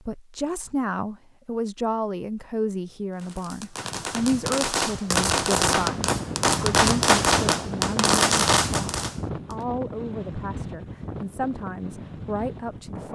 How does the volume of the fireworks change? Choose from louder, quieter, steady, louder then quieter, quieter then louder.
louder.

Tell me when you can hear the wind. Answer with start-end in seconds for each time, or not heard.
5.0-13.1.